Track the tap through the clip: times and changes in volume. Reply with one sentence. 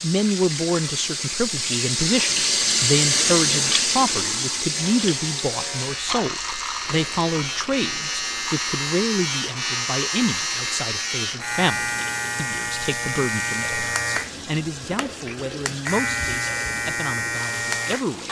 The tap can be heard from 0.0 to 18.2 s, getting quieter.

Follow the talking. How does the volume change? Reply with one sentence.
The volume of the talking goes down.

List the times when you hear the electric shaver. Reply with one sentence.
You can hear the electric shaver from 4.7 to 18.2 s.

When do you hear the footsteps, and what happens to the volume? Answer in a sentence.
You can't hear the footsteps here.